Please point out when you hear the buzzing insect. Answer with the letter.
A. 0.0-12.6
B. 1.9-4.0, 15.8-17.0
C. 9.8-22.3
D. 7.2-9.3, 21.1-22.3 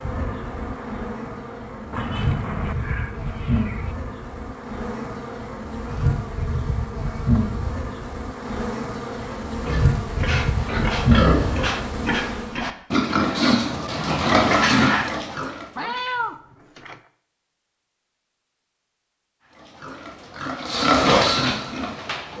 A.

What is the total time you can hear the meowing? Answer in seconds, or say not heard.
3 s.